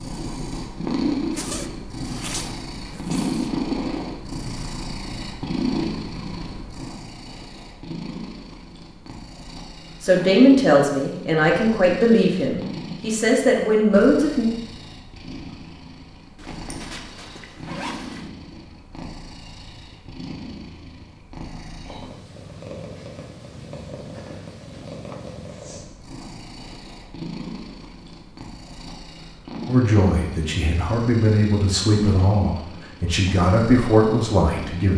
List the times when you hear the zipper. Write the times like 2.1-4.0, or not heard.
1.3-3.5, 16.4-18.3, 24.1-25.4.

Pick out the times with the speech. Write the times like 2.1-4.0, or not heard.
10.0-14.4, 29.6-34.9.